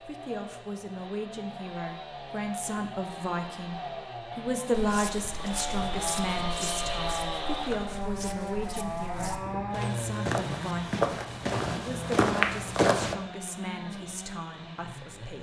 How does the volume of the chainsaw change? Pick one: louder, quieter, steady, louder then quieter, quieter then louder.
louder then quieter.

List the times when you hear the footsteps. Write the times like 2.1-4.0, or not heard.
4.7-13.2.